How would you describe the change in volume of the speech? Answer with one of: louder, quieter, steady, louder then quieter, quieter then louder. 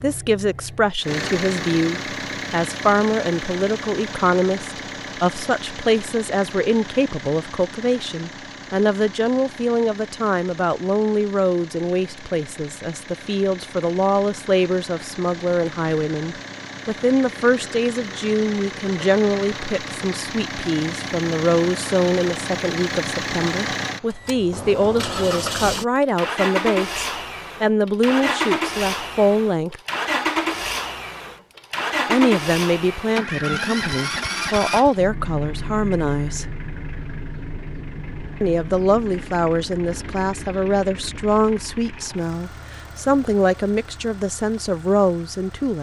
steady.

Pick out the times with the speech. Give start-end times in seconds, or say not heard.
0.0-29.8, 32.0-36.5, 38.4-45.7.